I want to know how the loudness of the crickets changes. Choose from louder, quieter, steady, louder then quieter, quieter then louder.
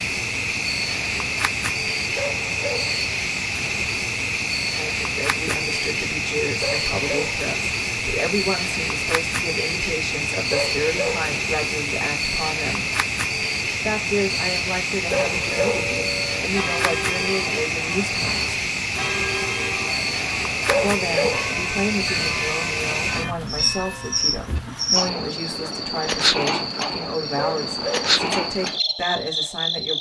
steady.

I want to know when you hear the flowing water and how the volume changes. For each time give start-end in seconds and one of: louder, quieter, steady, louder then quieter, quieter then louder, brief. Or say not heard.
not heard.